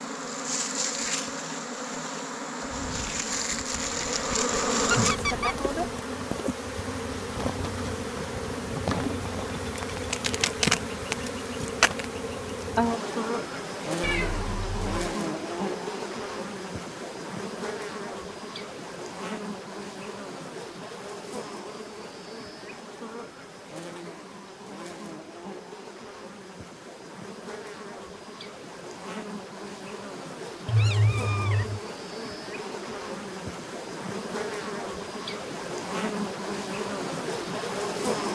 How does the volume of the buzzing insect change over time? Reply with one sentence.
The volume of the buzzing insect goes down, then up.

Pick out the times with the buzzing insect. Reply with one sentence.
You can hear the buzzing insect from 0.0 to 38.2 s.